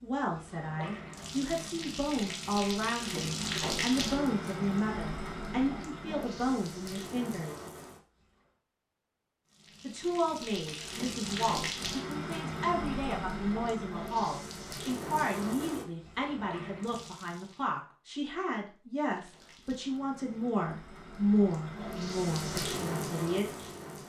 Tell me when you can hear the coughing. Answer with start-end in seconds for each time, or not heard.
not heard.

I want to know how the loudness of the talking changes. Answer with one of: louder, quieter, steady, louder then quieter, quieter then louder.
steady.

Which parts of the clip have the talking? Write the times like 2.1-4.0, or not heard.
0.0-7.7, 9.8-23.6.